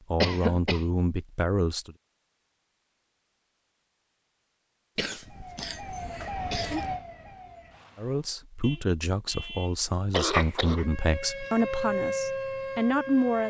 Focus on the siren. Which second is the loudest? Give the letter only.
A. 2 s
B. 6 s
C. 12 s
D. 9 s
C.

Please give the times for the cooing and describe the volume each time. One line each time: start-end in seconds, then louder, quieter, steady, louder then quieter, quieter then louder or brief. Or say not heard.
not heard.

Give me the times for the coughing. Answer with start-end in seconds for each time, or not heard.
0.2-0.8, 5.0-6.9, 10.1-10.8.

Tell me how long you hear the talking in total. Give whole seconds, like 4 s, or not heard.
7 s.